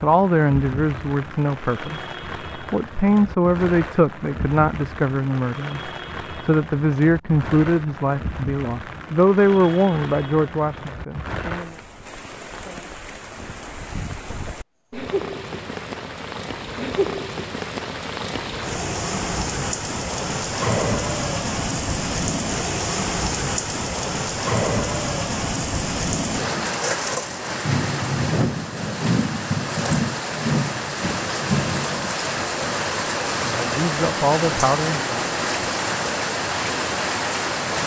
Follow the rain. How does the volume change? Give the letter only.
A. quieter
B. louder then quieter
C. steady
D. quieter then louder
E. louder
E.